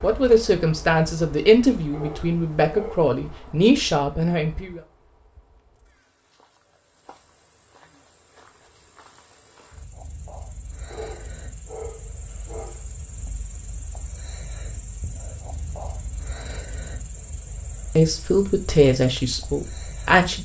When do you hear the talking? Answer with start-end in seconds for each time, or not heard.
0.0-4.8, 17.9-20.4.